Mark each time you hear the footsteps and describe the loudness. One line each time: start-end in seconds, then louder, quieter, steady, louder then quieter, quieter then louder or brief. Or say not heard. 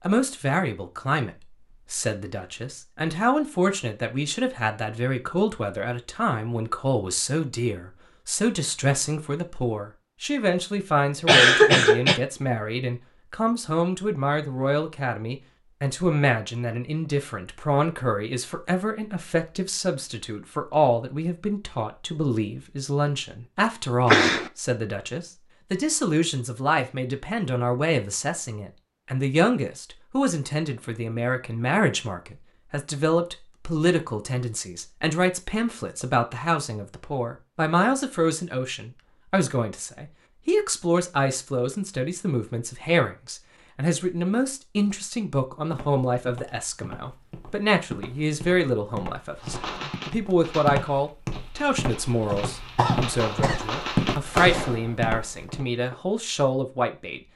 45.6-55.6 louder.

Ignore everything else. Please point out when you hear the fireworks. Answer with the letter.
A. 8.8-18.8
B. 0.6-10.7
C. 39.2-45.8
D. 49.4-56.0
D.